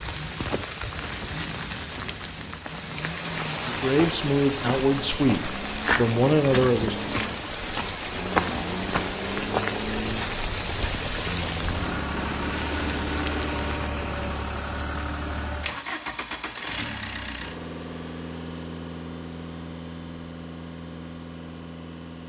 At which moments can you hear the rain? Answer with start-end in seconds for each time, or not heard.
0.0-13.7.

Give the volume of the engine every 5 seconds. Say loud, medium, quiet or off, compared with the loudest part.
medium, loud, loud, loud, medium.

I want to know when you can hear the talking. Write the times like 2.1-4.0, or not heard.
3.6-7.2.